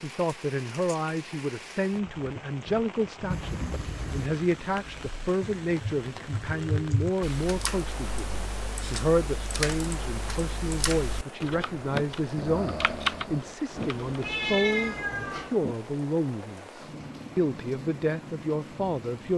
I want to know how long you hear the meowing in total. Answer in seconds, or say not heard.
3 s.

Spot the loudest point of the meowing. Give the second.
15 s.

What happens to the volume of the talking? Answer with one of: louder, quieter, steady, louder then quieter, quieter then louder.
steady.